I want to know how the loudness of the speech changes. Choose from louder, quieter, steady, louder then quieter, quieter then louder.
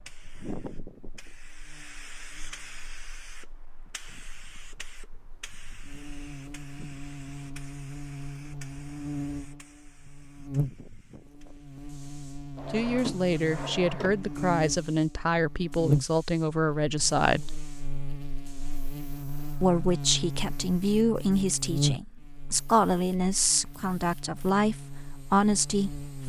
steady.